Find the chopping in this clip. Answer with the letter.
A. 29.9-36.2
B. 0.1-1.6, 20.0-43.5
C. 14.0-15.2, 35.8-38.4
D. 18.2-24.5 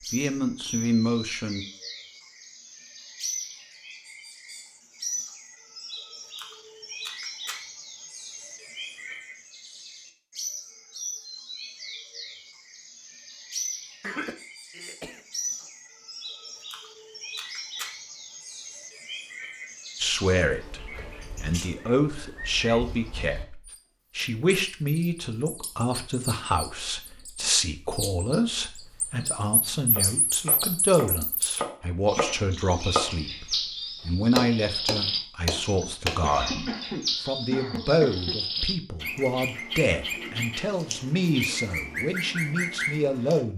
A.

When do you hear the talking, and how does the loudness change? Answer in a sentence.
The talking can be heard briefly from 0.1 to 1.6 s; and from 20.0 to 43.5 s, at a steady volume.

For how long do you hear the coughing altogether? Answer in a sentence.
You can hear the coughing for 4 seconds altogether.